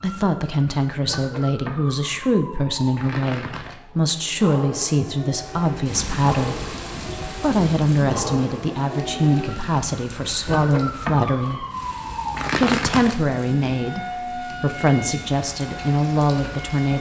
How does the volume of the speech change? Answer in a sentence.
The loudness of the speech stays about the same.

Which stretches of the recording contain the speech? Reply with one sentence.
The speech can be heard from 0.0 to 6.7 s, from 7.4 to 11.7 s and from 12.5 to 16.9 s.